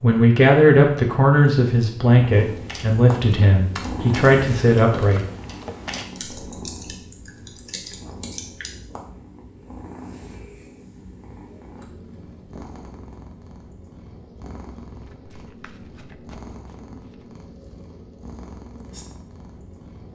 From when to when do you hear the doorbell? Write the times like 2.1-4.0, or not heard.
not heard.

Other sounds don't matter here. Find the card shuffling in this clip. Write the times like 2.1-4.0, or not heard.
5.0-6.1, 14.9-17.4.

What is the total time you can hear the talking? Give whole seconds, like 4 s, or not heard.
5 s.